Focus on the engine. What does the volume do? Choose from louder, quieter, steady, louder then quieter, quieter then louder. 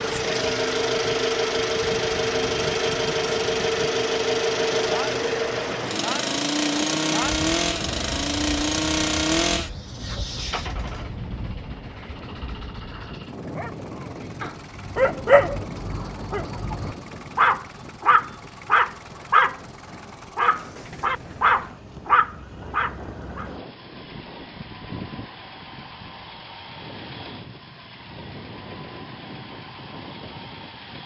quieter.